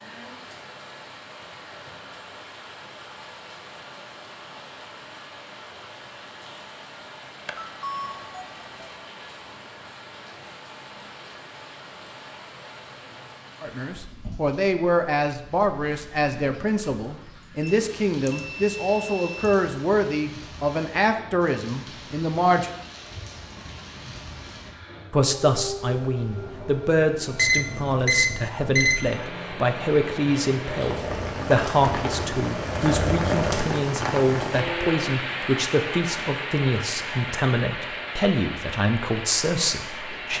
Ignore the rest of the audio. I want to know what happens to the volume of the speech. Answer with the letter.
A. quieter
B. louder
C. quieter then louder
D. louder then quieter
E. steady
E.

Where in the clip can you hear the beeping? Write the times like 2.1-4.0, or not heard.
7.5-9.0, 17.6-19.6, 27.4-29.1.